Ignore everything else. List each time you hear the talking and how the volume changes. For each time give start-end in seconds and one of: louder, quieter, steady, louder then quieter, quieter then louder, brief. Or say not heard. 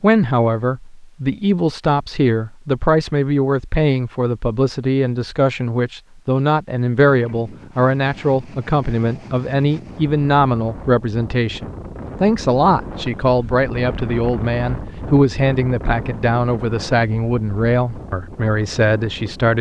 0.0-19.5 steady.